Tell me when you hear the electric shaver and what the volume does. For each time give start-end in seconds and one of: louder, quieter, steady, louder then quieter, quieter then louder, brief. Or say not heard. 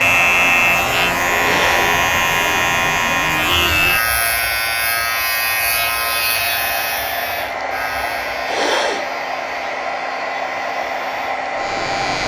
0.0-12.2 quieter.